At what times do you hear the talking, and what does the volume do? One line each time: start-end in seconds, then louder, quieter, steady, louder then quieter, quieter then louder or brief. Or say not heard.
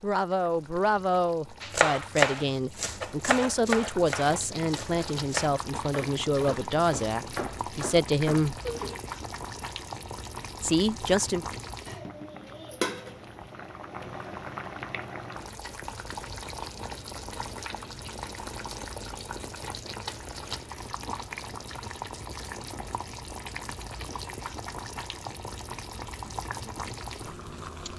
0.0-8.6 steady
10.6-11.4 brief.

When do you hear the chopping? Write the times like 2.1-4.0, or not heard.
1.6-9.0.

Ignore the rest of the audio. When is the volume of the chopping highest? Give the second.
2 s.